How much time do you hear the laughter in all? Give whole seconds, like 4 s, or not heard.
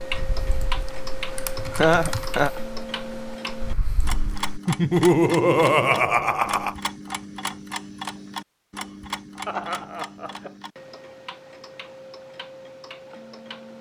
4 s.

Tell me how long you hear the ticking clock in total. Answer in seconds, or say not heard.
14 s.